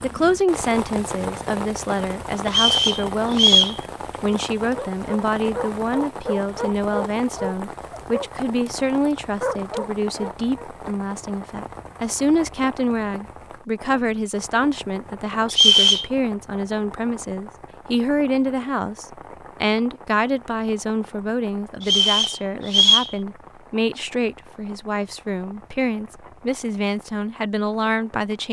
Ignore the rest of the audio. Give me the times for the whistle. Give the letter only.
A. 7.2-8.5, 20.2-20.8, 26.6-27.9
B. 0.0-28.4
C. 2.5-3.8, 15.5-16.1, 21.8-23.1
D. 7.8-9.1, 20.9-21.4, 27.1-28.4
C.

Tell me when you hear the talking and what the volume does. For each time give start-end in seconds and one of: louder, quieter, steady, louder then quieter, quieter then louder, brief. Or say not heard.
0.0-28.4 steady.